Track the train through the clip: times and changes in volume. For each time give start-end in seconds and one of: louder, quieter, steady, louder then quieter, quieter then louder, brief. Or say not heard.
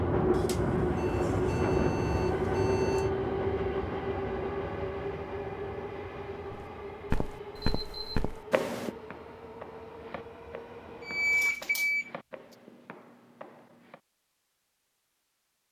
0.0-11.6 quieter.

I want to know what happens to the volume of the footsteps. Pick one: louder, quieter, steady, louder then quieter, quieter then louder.
quieter.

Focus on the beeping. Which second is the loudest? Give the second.
11 s.